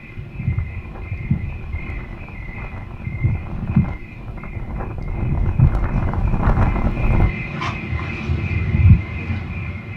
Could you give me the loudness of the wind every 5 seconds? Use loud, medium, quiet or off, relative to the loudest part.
quiet, loud.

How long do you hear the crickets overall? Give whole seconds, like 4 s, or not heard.
10 s.